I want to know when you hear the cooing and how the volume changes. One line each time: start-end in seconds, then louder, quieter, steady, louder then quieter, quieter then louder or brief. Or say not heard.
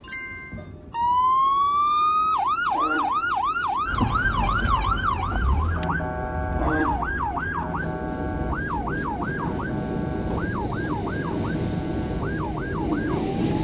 not heard.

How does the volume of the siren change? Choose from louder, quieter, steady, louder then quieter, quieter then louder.
quieter.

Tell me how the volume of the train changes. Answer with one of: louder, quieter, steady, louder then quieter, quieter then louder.
louder.